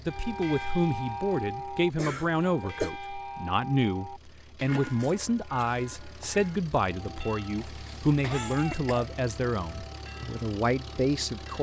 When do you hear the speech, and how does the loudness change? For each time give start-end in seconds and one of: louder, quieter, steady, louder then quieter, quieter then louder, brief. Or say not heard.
0.1-11.5 steady.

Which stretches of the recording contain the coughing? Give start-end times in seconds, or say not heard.
1.9-2.9, 7.5-9.2.